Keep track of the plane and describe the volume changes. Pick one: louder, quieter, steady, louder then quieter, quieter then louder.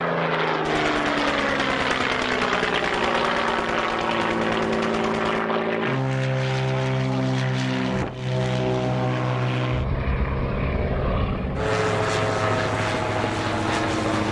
steady.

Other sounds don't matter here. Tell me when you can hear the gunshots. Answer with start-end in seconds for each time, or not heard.
0.7-5.5.